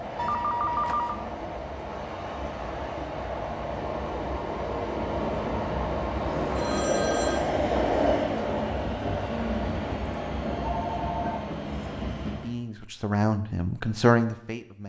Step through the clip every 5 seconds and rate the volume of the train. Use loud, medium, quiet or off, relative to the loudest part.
medium, loud, medium.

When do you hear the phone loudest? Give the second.
1 s.